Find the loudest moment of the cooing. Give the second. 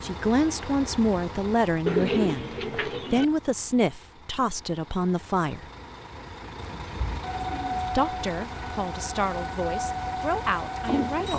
2 s.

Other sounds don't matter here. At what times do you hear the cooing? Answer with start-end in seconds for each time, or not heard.
1.9-3.2, 6.5-7.9.